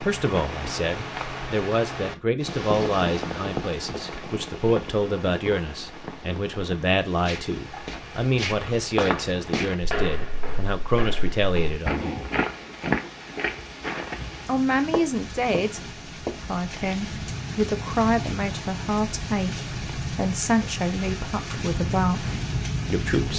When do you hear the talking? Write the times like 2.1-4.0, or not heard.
0.0-12.2, 14.4-15.8, 16.4-22.3, 22.9-23.3.